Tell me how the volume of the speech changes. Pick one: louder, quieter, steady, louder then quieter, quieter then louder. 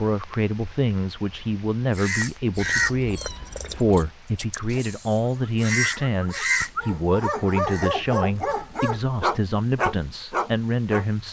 steady.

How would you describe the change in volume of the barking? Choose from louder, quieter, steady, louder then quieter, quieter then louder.
louder.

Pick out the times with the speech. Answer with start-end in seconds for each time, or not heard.
0.0-11.2.